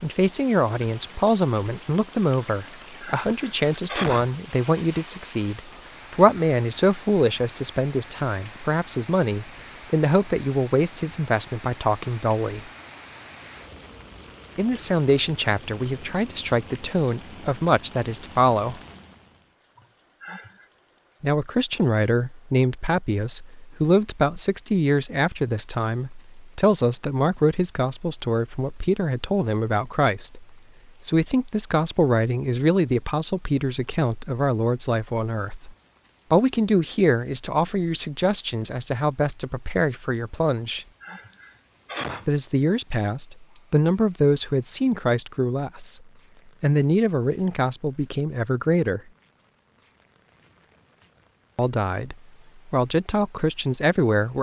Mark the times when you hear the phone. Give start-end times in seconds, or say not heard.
not heard.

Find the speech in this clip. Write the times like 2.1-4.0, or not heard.
0.0-12.7, 14.6-18.8, 21.2-40.9, 42.2-46.0, 46.6-49.0, 51.5-54.3.